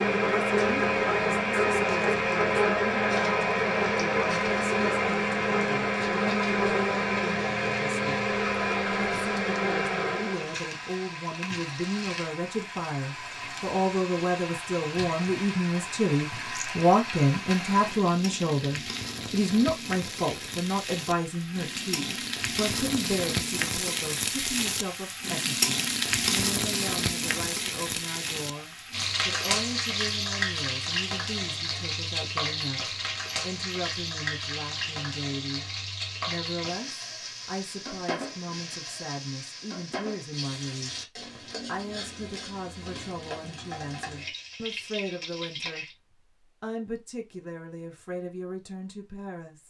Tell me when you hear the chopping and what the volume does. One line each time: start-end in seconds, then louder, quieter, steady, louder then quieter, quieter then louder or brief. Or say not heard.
not heard.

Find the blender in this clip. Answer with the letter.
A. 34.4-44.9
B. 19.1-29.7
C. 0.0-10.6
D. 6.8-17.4
C.